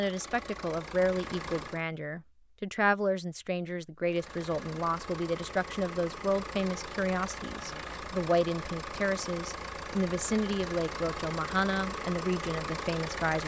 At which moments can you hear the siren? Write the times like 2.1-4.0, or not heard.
not heard.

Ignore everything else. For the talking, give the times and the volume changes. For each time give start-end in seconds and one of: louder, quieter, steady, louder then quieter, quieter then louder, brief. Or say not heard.
0.0-13.4 steady.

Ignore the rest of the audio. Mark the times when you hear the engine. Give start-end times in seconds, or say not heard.
0.0-1.9, 4.0-13.4.